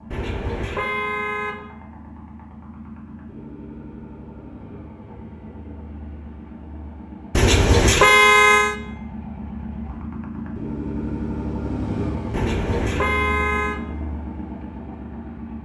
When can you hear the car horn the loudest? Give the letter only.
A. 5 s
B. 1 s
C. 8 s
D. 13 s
C.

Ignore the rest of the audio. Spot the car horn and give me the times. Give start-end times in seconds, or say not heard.
0.1-1.6, 7.3-8.8, 12.3-13.8.